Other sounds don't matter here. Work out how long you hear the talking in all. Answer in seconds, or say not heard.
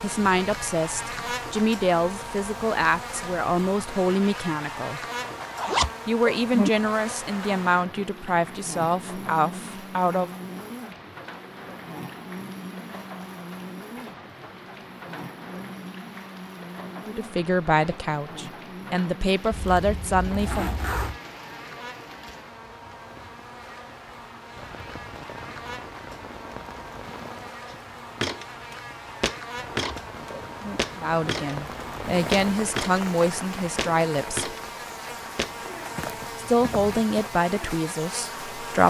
19 s.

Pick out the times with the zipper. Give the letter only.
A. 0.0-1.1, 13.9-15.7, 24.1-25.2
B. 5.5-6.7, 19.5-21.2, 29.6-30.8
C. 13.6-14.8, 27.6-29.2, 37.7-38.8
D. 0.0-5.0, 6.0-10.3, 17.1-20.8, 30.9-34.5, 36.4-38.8
B.